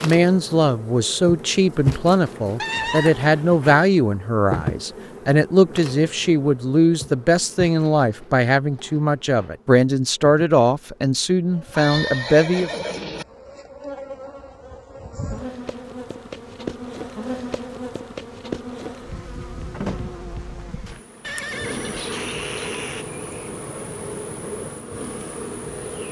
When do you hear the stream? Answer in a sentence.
The stream can't be heard in this clip.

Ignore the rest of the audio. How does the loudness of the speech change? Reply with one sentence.
The loudness of the speech stays about the same.